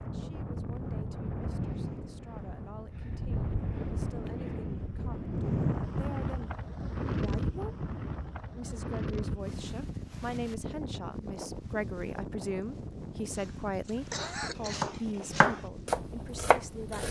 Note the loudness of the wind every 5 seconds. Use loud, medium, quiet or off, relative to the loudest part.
loud, loud, medium, medium.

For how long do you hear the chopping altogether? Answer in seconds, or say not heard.
3 s.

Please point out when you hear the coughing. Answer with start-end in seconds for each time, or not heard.
13.3-14.8.